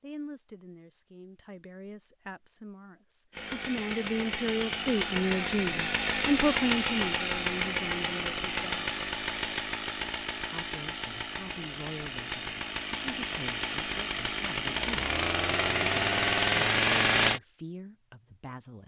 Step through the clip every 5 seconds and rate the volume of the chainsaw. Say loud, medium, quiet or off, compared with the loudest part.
medium, medium, medium, loud.